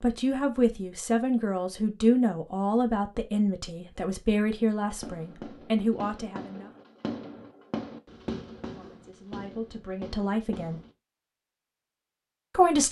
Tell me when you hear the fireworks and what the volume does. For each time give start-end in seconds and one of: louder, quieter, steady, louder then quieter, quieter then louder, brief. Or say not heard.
4.8-10.9 louder then quieter.